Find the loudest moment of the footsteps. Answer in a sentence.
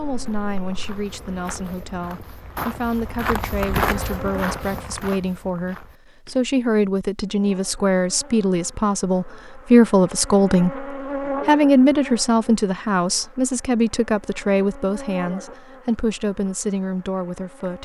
The volume of the footsteps peaks at 4 seconds.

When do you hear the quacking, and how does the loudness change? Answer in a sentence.
You can't hear the quacking here.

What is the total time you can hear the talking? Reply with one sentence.
The talking can be heard for 18 seconds in total.